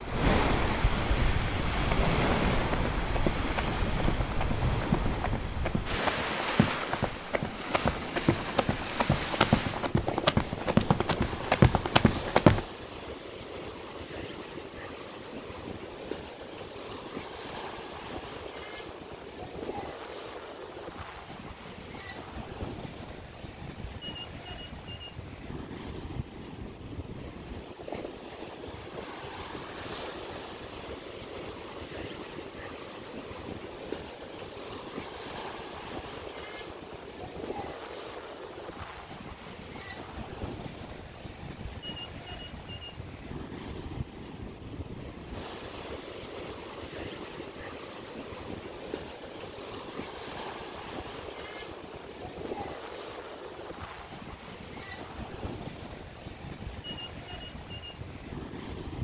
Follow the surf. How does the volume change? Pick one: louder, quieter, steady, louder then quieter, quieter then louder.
quieter.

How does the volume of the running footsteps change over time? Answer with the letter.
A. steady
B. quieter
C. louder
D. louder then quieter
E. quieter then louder
C.